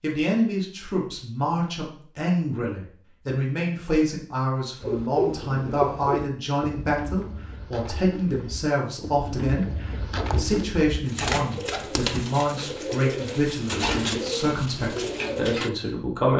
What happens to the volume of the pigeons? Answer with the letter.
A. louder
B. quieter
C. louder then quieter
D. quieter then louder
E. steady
D.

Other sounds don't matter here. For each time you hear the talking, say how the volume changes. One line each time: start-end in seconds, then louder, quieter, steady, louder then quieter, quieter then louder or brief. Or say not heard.
0.0-16.3 steady.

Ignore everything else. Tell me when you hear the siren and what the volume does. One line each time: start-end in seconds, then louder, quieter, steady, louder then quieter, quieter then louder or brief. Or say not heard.
not heard.